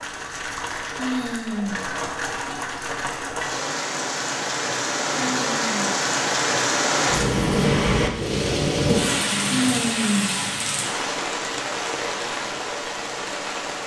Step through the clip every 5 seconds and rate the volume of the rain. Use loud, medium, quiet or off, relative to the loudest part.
medium, loud, medium.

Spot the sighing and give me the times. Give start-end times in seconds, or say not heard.
0.9-1.9, 5.2-6.0, 9.4-10.4.